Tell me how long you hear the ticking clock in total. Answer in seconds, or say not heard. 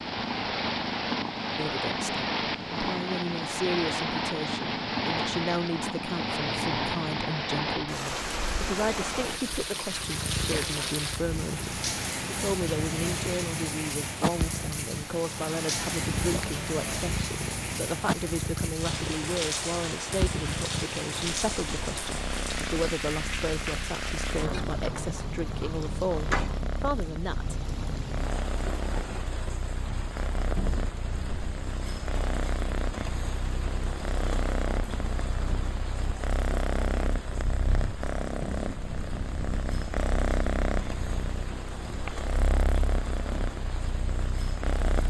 not heard.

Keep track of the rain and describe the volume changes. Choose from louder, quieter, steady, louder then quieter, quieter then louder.
quieter.